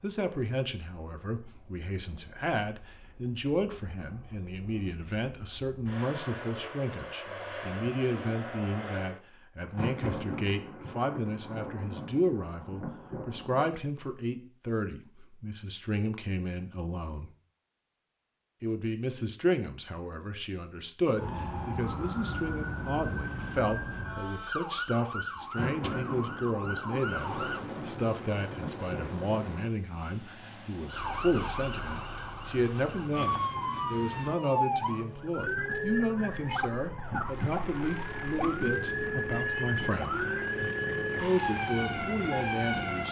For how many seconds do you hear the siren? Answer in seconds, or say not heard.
19 s.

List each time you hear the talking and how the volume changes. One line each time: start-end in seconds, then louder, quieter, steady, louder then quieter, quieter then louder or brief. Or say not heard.
0.0-17.3 steady
18.6-40.3 steady
41.2-43.0 brief.